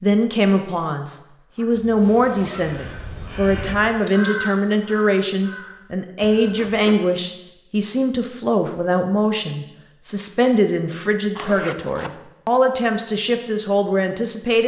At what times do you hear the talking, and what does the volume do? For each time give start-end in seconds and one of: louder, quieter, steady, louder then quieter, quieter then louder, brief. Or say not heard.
0.0-14.6 steady.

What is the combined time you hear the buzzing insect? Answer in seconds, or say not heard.
not heard.